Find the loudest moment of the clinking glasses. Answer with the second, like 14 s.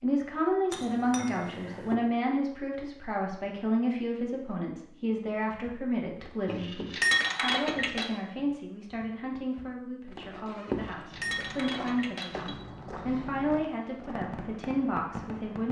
7 s.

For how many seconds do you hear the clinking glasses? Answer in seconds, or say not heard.
5 s.